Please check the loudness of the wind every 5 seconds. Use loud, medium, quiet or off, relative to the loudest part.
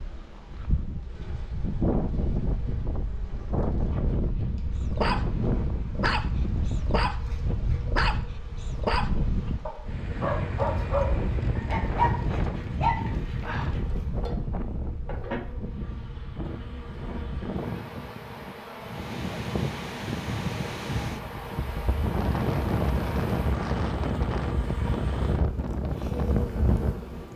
loud, loud, loud, medium, loud, loud.